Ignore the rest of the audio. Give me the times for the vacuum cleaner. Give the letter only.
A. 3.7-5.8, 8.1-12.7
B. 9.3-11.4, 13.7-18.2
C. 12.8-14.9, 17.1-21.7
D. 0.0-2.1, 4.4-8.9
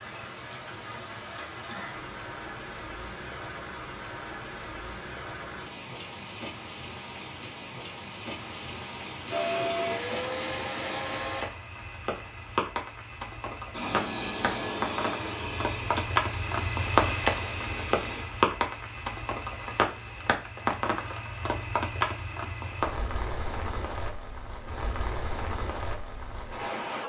B.